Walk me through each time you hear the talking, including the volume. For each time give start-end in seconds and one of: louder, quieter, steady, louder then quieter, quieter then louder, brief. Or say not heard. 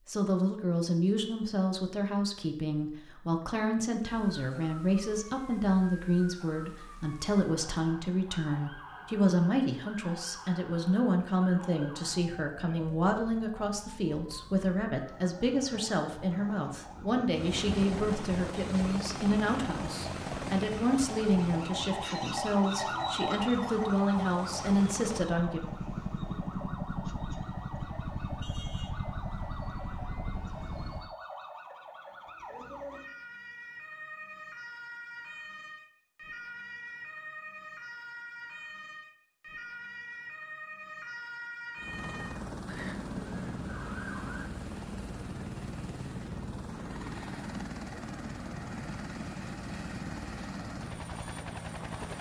0.1-25.6 steady.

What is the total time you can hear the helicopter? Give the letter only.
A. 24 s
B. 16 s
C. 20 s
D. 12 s
A.